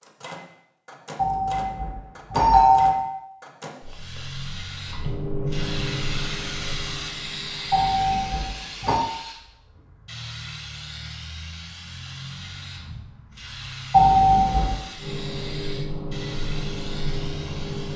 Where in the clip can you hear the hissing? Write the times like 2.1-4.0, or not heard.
3.8-17.9.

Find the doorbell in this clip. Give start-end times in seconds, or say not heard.
1.1-3.0, 7.7-9.0, 13.9-14.8.